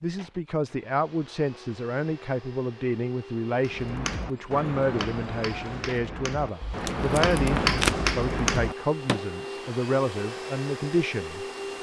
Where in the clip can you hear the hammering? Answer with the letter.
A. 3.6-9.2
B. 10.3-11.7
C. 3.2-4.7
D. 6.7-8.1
A.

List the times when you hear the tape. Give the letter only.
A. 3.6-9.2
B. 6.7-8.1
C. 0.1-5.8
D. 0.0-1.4
B.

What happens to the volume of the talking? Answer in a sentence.
The loudness of the talking stays about the same.